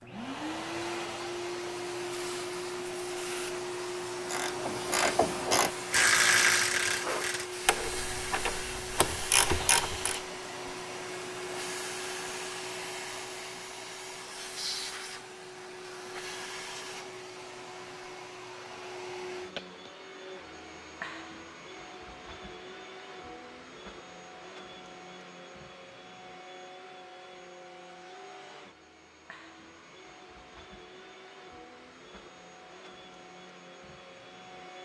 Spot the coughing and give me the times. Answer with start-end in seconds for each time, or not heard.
not heard.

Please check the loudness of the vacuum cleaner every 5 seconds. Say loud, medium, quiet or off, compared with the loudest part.
loud, loud, loud, medium, medium, quiet, quiet.